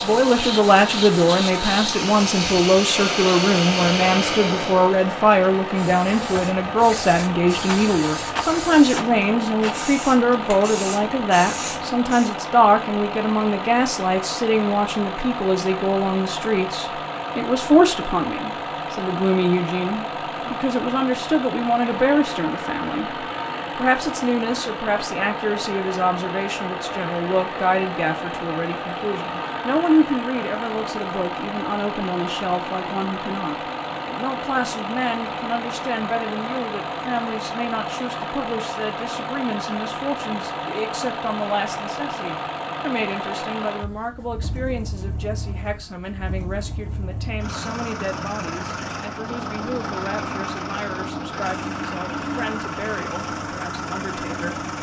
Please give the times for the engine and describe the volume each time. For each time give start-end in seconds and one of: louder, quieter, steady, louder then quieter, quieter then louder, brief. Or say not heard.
0.0-54.7 steady.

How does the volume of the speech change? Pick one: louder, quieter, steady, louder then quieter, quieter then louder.
quieter.